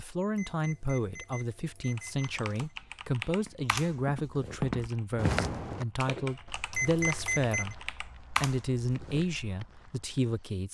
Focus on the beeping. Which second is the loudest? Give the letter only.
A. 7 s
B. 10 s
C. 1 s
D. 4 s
A.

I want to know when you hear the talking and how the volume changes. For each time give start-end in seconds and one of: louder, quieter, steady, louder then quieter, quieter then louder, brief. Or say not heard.
0.0-10.6 steady.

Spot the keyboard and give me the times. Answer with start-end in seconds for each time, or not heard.
1.9-9.2.